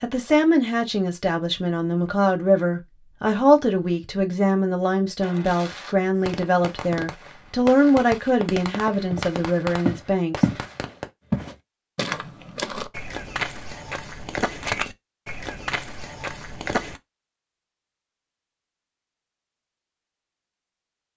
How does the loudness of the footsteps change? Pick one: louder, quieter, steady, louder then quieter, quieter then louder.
quieter.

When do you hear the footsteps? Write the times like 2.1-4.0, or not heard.
9.1-17.0.